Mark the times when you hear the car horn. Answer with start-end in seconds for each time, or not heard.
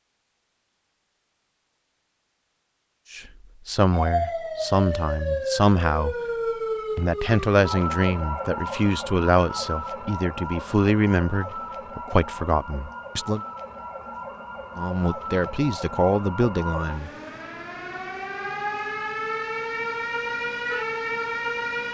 not heard.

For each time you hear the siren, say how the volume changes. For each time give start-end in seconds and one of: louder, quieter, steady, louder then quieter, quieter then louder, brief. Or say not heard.
3.9-21.9 quieter then louder.